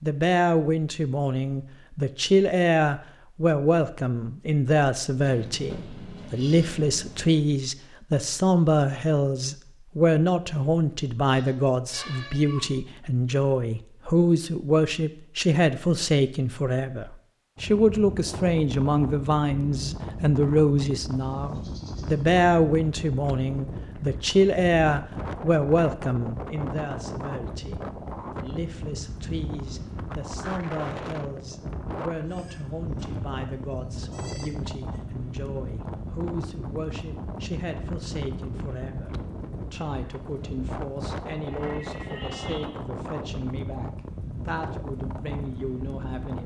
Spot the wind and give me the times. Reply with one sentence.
You can hear the wind from 17.6 to 46.4 s.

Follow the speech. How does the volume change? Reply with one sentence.
The loudness of the speech goes down.